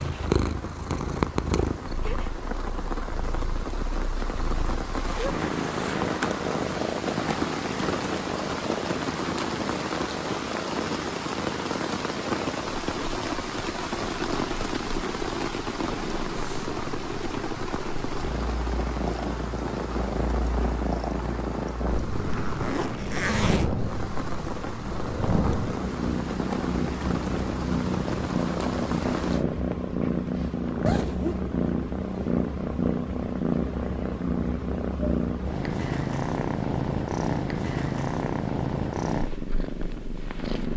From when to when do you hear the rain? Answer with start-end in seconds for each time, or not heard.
0.0-29.4.